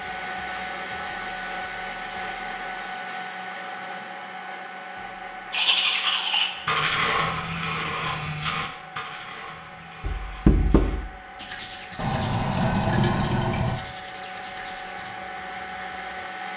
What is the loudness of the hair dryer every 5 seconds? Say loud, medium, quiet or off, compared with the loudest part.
loud, medium, medium, loud.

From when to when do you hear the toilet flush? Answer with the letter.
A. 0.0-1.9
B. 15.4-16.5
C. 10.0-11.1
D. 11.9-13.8
D.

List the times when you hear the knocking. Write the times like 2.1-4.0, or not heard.
10.0-11.1.